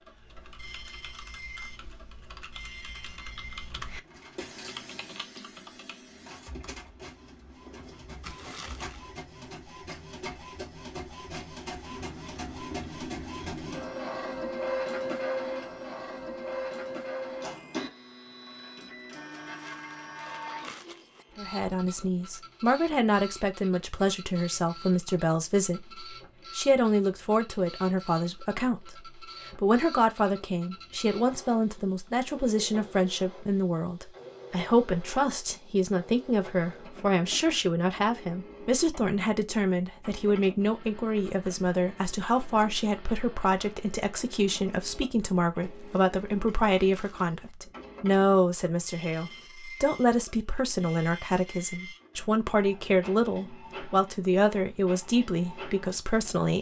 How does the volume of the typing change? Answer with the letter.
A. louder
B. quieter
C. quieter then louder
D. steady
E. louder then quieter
E.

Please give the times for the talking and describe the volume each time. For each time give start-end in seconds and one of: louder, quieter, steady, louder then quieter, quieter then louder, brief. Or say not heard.
21.4-56.5 steady.